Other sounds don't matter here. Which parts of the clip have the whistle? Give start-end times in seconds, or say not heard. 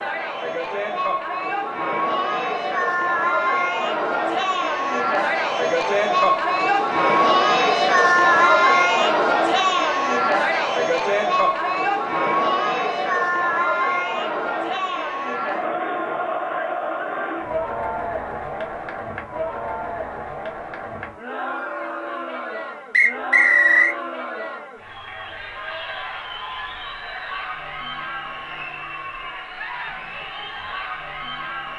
22.9-23.9.